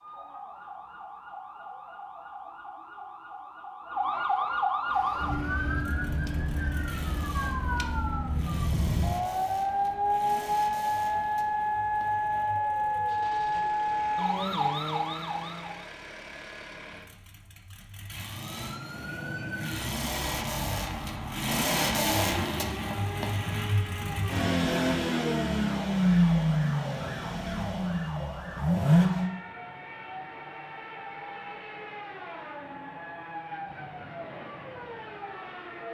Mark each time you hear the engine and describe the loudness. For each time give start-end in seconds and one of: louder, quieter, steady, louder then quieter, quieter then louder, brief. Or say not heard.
4.8-29.3 louder.